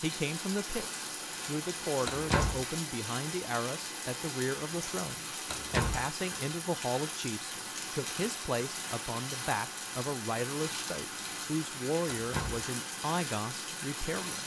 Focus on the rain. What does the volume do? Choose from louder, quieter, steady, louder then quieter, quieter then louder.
steady.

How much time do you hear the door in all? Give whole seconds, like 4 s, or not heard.
2 s.